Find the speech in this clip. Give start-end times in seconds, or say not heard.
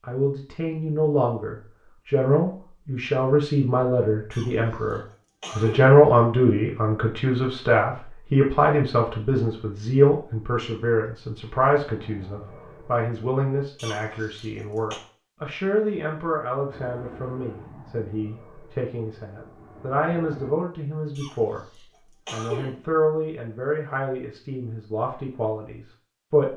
0.1-26.5.